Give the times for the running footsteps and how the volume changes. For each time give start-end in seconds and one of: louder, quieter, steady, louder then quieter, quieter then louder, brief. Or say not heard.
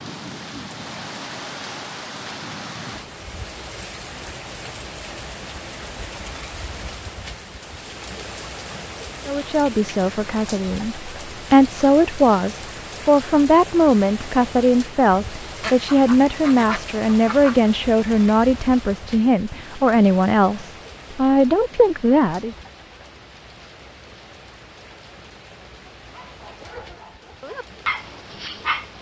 not heard.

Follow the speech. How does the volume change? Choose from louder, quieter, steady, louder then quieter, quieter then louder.
steady.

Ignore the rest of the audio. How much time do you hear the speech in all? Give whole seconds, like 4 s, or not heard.
13 s.